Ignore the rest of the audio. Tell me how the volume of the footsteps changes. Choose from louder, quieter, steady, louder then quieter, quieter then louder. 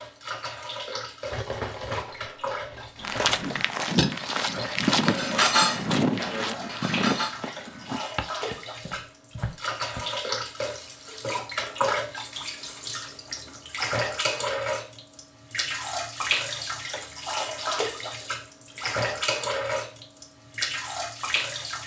quieter.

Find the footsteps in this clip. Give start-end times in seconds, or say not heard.
3.0-10.0.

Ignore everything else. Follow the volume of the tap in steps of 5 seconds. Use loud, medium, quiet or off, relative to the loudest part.
medium, medium, loud, loud, loud.